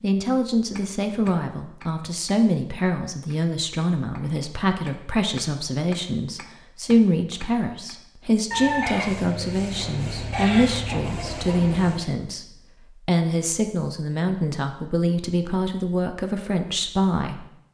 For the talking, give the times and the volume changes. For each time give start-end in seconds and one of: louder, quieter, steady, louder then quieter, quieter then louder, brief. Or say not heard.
0.0-17.5 steady.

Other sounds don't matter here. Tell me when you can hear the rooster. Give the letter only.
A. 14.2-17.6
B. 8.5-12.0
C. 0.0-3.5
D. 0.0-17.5
B.